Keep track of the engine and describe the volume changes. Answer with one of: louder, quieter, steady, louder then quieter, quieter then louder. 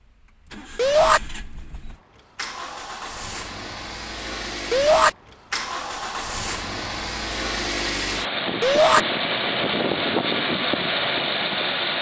louder.